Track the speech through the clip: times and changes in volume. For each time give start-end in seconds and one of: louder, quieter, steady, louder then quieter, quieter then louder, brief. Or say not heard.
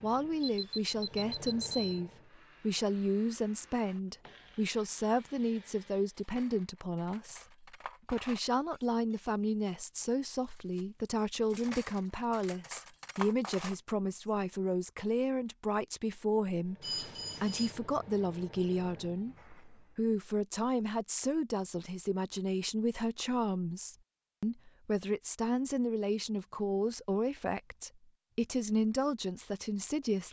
0.0-30.2 steady.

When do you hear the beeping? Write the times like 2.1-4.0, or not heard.
0.4-1.8, 16.8-17.8.